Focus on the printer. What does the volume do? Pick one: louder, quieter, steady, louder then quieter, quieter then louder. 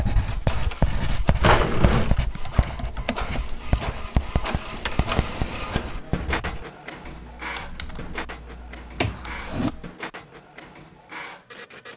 louder then quieter.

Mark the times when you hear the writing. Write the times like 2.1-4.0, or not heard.
0.0-6.7.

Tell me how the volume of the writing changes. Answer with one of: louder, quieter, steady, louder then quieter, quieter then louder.
quieter.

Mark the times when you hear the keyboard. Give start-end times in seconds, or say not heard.
2.0-3.4, 7.0-9.9.